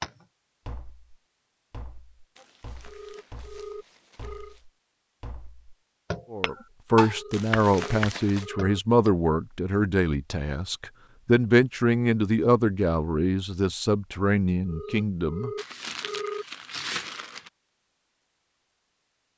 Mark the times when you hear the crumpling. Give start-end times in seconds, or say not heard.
2.4-4.7, 7.3-8.5, 15.6-17.5.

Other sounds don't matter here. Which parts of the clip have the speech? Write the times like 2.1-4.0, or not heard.
6.3-15.5.